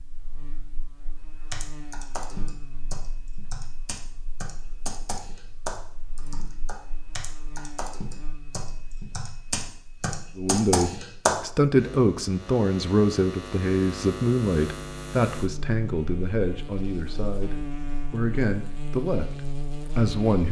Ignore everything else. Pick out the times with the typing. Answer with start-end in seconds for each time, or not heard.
1.5-11.3.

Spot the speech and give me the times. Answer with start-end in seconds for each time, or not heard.
10.3-20.4.